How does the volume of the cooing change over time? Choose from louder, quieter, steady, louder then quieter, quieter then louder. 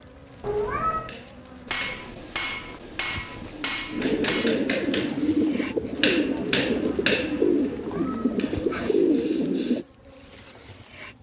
louder.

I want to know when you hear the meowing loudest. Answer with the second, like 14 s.
1 s.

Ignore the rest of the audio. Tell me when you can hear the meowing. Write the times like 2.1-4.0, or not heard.
0.4-1.1, 7.7-8.9.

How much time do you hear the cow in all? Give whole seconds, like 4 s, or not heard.
not heard.